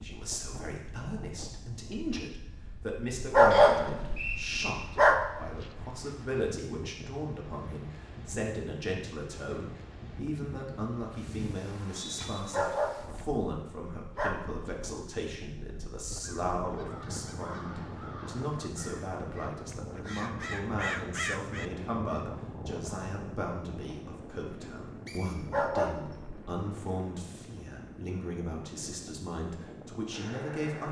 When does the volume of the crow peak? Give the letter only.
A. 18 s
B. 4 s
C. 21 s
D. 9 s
C.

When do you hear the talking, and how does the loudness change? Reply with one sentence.
You can hear the talking from 0.0 to 30.8 s, at a steady volume.